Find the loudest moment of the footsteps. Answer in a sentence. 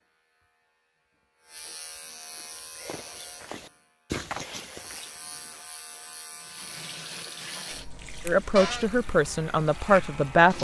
The volume of the footsteps peaks at 4 seconds.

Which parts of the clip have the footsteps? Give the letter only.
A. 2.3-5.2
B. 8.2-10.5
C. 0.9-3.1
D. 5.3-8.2
A.